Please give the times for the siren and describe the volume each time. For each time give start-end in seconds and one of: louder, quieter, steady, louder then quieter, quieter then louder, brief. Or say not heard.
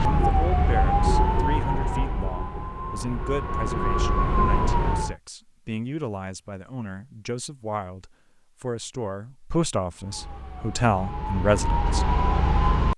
0.0-5.2 quieter then louder
9.9-12.9 brief.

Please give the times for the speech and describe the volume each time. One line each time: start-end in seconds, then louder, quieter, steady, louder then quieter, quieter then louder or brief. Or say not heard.
0.0-12.1 louder.